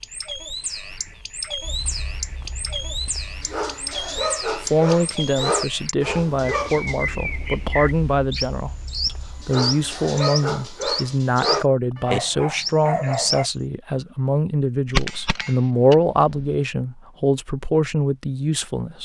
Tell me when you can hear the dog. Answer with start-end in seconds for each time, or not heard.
1.6-13.5.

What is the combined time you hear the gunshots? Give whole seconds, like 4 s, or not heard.
2 s.